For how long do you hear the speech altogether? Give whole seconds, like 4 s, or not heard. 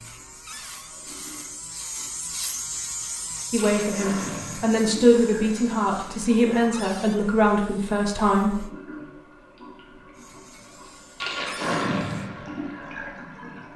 5 s.